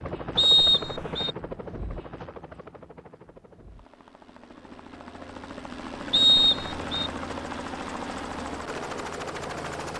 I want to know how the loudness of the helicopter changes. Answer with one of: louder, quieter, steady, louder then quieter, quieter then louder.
quieter then louder.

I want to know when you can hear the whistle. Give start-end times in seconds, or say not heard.
0.3-1.4, 6.1-7.1.